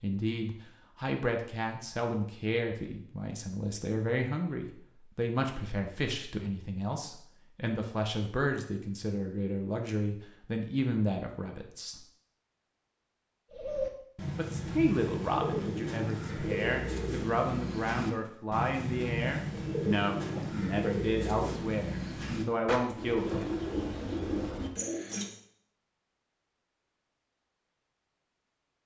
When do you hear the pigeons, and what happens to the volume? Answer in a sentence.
The pigeons can be heard from 13.5 to 25.4 s, at a steady volume.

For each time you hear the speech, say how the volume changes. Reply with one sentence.
The speech can be heard from 0.0 to 12.0 s, at a steady volume; and from 14.3 to 23.4 s, at a steady volume.